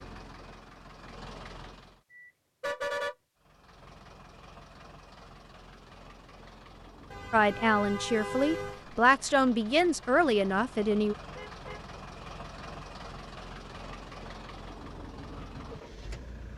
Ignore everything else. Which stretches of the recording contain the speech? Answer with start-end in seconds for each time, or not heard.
7.3-11.2.